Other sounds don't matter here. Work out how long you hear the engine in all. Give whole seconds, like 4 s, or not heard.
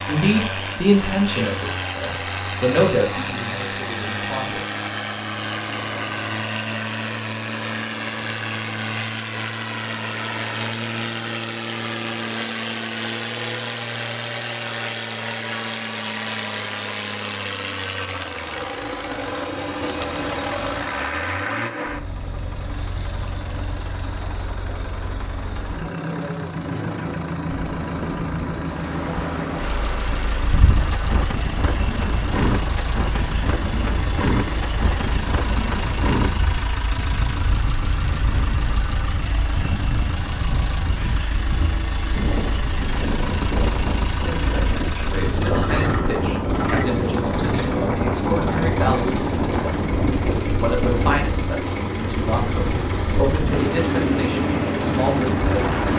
56 s.